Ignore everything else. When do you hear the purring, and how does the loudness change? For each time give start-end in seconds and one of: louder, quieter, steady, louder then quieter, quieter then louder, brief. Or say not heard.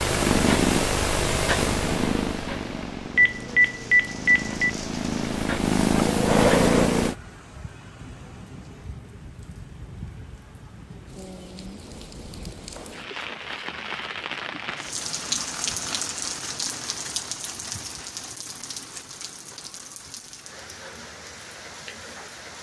0.0-7.2 quieter then louder.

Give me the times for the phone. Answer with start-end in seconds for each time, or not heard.
3.1-4.7.